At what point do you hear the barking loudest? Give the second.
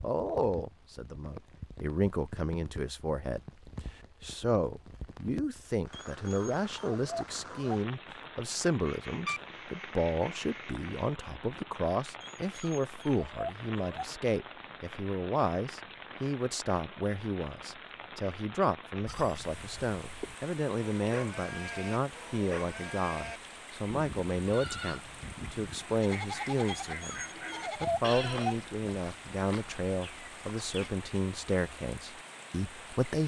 28 s.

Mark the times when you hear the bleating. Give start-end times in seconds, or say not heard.
19.1-30.9.